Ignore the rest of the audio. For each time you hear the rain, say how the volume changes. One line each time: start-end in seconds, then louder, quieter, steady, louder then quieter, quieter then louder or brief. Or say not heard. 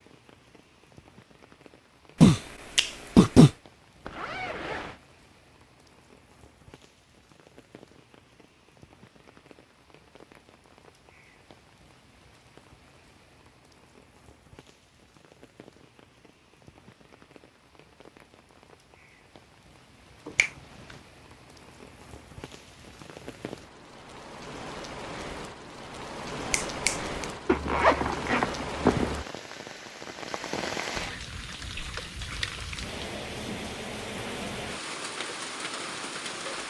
0.0-36.6 louder.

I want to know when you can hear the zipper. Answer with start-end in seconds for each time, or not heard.
4.0-5.0, 27.4-29.2.